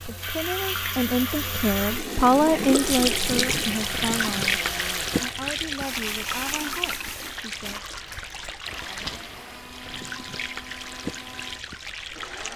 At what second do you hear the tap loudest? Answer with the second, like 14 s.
3 s.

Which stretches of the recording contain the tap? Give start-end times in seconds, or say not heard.
0.0-12.5.